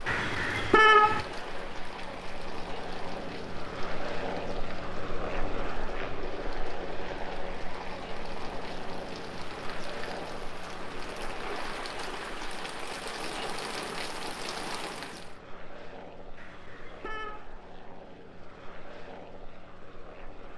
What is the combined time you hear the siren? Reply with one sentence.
The siren can't be heard in this clip.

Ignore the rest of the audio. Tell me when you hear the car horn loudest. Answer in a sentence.
The loudest moment of the car horn is at 1 second.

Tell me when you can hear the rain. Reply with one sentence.
You can hear the rain from 0.0 to 15.4 s.